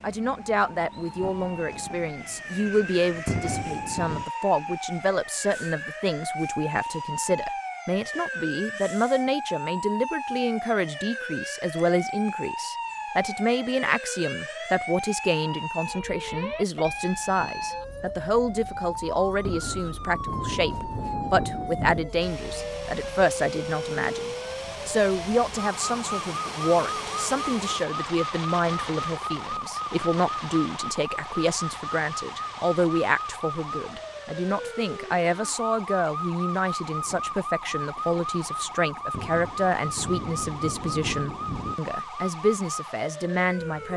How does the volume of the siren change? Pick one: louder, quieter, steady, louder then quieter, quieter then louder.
steady.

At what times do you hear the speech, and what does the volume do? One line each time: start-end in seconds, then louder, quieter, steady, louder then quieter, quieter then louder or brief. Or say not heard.
0.0-43.9 steady.